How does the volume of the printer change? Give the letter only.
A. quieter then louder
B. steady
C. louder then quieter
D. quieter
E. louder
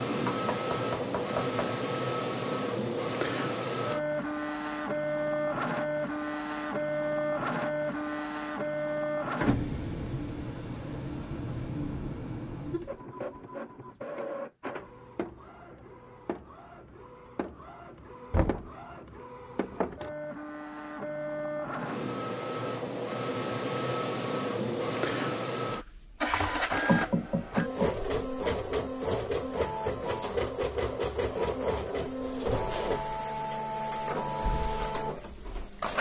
A.